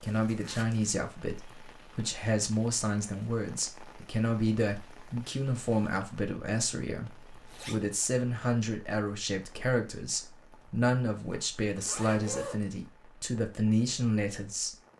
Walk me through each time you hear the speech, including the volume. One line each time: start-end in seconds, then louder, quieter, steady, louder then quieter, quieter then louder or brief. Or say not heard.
0.0-14.8 steady.